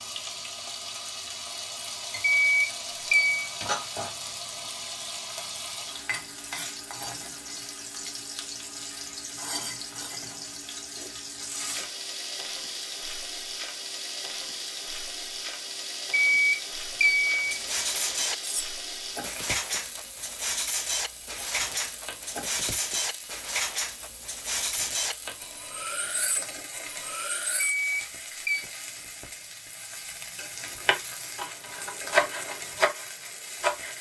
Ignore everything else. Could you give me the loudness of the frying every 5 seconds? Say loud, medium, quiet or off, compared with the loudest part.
loud, loud, loud, loud, medium, medium, medium.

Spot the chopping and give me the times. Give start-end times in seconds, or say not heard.
30.9-33.9.